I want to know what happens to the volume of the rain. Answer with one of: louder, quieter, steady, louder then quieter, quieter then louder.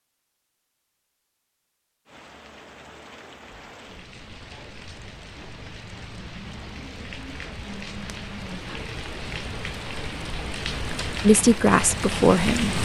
louder.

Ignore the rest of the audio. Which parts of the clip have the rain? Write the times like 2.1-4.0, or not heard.
2.0-12.8.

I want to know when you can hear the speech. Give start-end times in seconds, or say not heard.
11.2-12.8.